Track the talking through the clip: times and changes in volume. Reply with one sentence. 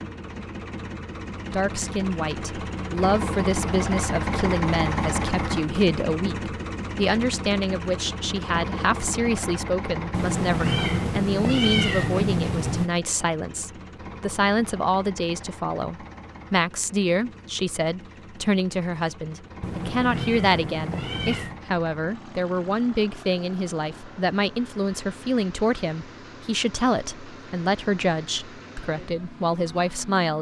The talking can be heard from 1.5 to 30.3 s, at a steady volume.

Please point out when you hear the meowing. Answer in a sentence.
The meowing can be heard from 10.1 to 12.9 s and from 19.6 to 21.6 s.